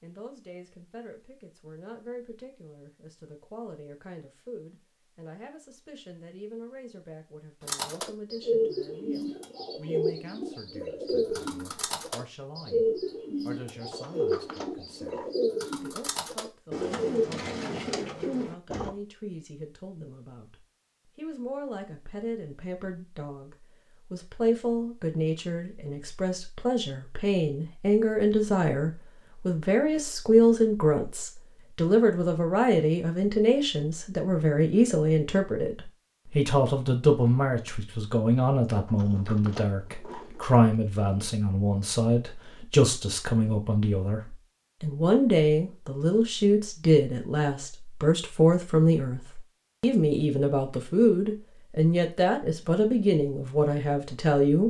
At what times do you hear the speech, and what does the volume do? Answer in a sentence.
The speech can be heard from 0.0 to 54.6 s, getting louder.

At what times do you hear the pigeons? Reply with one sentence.
You can hear the pigeons from 7.7 to 18.9 s.